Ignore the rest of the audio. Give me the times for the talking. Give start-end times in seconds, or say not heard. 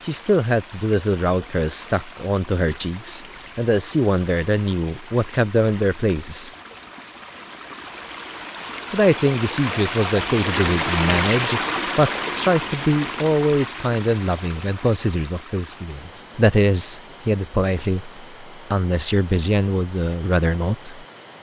0.0-6.5, 8.9-21.1.